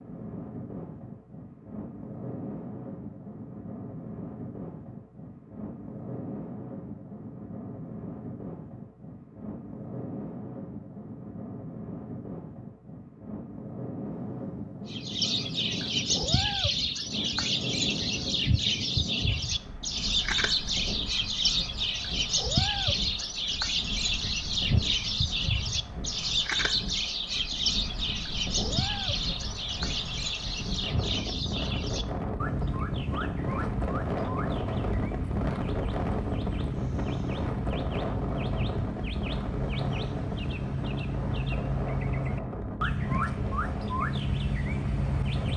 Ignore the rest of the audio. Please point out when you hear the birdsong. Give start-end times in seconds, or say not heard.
14.8-45.5.